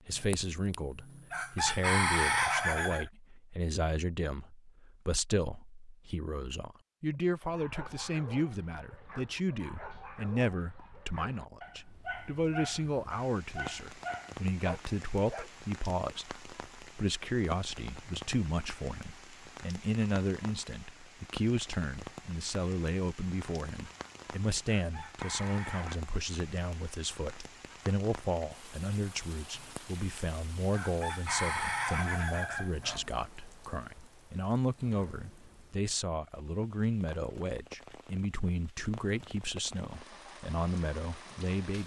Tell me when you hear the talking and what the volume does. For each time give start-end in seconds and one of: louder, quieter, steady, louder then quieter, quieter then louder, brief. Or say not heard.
0.1-41.8 steady.